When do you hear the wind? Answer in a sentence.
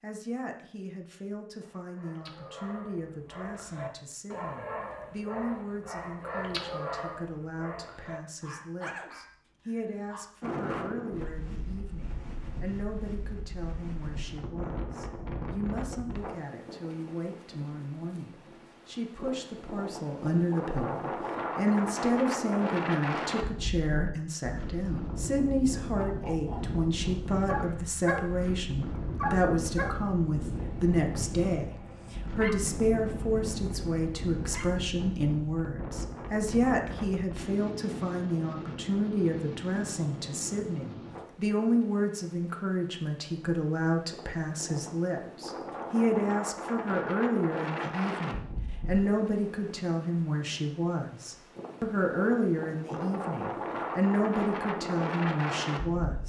The wind can be heard from 10.4 to 56.2 s.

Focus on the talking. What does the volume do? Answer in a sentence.
The loudness of the talking goes up.